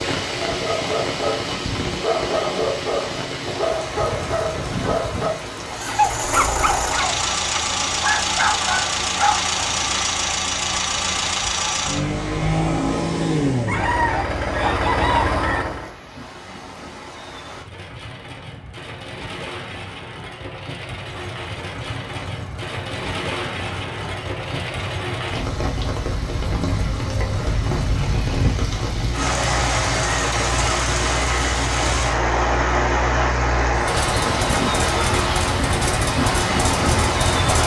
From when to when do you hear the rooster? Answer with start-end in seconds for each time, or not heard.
13.7-15.7.